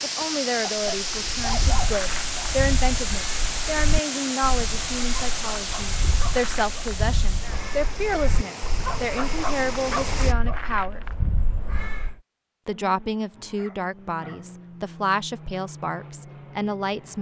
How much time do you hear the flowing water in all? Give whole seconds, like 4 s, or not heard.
10 s.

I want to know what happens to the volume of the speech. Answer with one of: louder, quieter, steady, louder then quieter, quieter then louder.
steady.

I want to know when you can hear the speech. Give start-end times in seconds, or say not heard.
0.0-11.0, 12.7-17.1.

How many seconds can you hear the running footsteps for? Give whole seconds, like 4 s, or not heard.
not heard.